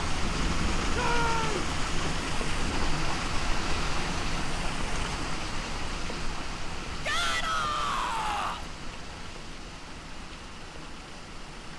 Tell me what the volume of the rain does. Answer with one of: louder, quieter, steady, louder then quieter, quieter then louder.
quieter.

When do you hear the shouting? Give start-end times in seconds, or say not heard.
0.9-1.7, 7.0-8.7.